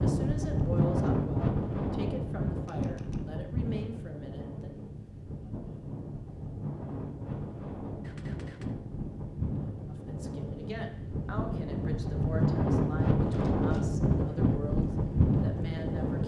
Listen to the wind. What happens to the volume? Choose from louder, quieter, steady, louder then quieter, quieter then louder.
quieter then louder.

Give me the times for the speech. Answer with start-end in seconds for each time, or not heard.
0.0-4.7, 9.8-16.2.